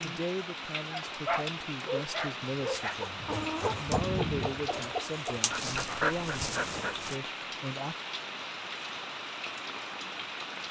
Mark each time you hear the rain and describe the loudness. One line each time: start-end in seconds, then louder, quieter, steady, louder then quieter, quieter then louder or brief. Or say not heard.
0.0-10.6 steady.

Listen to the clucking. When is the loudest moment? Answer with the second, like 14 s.
4 s.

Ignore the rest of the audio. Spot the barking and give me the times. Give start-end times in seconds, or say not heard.
1.1-3.0, 5.5-7.2.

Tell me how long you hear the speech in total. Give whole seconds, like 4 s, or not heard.
8 s.